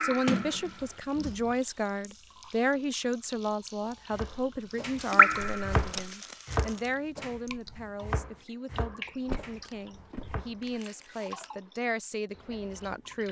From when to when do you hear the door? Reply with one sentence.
The door can be heard from 0.2 to 1.4 s, from 5.3 to 6.1 s and from 9.2 to 10.8 s.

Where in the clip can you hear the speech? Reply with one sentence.
The speech can be heard from 0.0 to 13.2 s.